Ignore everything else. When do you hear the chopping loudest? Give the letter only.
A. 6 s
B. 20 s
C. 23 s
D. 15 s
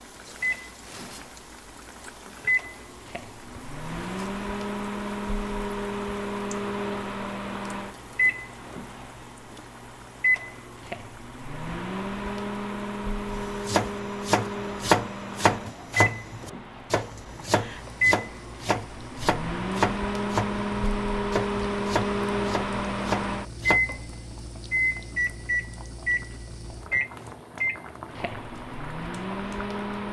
D.